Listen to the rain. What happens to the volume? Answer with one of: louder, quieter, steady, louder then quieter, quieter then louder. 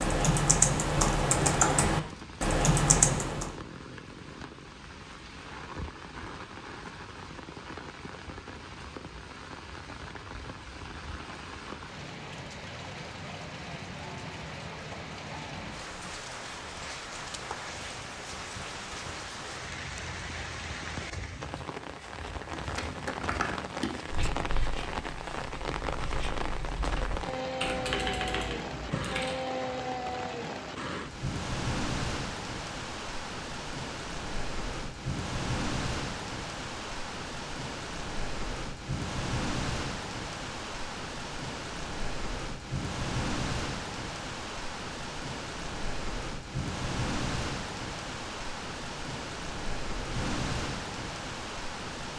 louder.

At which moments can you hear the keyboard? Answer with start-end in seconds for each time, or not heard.
0.0-3.5, 22.5-29.4.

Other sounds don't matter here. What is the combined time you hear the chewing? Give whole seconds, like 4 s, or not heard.
not heard.